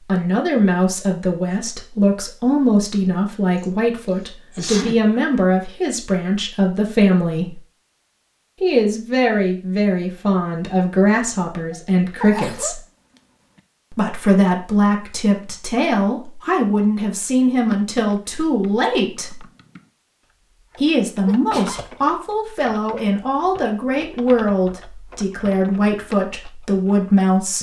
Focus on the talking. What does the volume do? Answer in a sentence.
The volume of the talking stays about the same.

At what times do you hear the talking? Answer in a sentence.
You can hear the talking from 0.1 to 7.6 s, from 8.6 to 12.8 s, from 13.9 to 19.4 s and from 20.8 to 27.5 s.